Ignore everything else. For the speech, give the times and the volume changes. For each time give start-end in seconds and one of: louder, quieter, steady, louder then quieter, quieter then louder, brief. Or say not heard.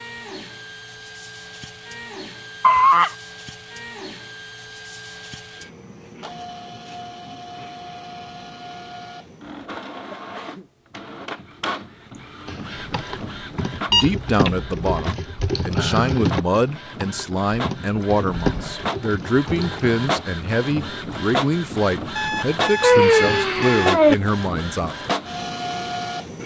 13.9-24.9 steady.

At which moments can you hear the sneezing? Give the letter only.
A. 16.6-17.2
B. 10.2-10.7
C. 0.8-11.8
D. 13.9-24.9
B.